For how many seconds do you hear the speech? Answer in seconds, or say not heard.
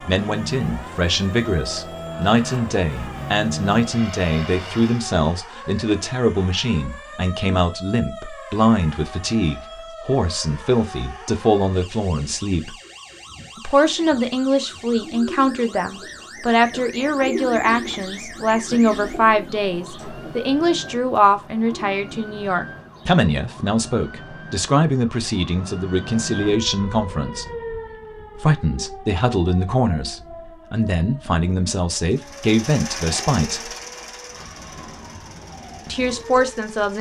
33 s.